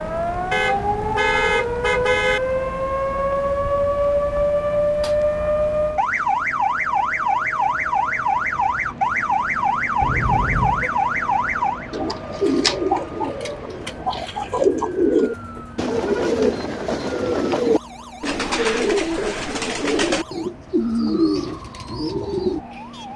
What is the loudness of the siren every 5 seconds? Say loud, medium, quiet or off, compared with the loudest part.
loud, loud, medium, quiet, quiet.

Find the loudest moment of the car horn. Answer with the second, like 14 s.
1 s.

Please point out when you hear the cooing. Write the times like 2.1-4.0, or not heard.
11.9-22.6.